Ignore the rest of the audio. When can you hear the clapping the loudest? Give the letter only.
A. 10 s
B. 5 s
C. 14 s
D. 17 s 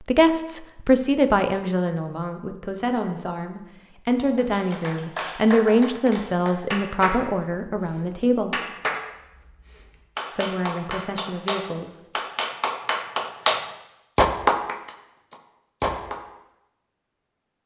C.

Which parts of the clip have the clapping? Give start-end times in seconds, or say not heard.
4.3-16.2.